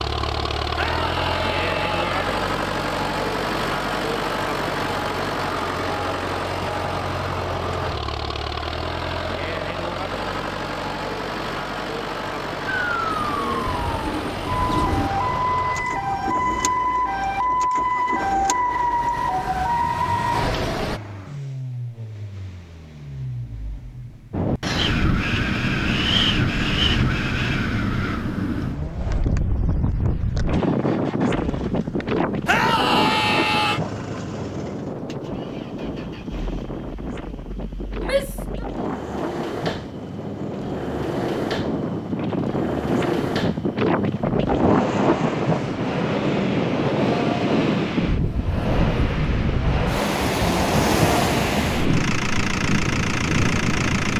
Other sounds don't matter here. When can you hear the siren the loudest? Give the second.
18 s.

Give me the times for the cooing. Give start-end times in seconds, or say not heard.
13.1-15.1.